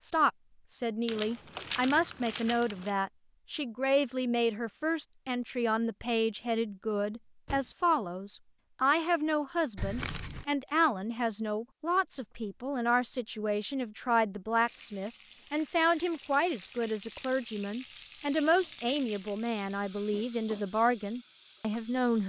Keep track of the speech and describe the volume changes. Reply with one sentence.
The volume of the speech stays about the same.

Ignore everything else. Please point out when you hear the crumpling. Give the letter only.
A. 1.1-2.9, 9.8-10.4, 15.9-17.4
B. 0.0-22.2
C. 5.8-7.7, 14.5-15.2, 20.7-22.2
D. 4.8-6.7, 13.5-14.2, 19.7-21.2
A.